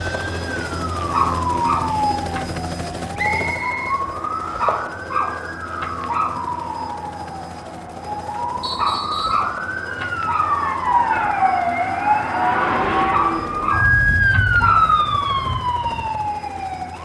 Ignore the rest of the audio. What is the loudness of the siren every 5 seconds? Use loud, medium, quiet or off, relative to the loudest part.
medium, medium, loud, medium.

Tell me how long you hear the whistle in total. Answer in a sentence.
The whistle can be heard for 2 seconds in total.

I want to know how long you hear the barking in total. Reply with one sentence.
You can hear the barking for 7 seconds altogether.